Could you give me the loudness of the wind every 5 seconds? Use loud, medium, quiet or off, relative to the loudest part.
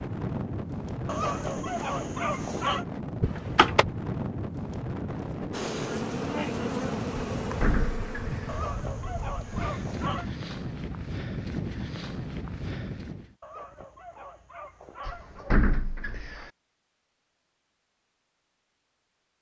loud, loud, loud, off.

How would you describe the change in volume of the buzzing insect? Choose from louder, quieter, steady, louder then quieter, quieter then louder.
quieter.